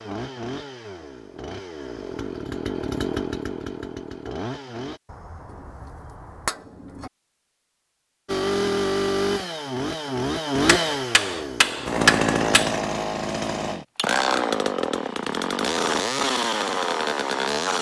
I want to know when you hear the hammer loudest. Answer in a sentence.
The volume of the hammer peaks at 12 seconds.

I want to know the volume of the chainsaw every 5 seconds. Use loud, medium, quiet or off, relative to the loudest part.
medium, loud, loud, loud.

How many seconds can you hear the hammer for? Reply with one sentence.
You can hear the hammer for 4 seconds altogether.